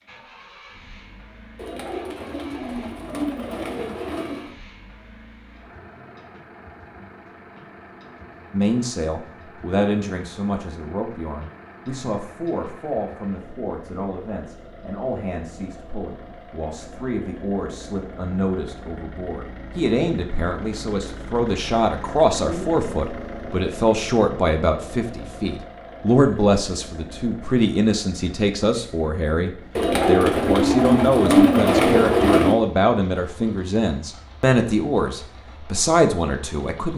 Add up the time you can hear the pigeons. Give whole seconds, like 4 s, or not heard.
6 s.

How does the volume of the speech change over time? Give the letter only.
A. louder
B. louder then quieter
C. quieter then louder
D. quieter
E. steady
A.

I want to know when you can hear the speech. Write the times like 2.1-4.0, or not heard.
8.5-36.9.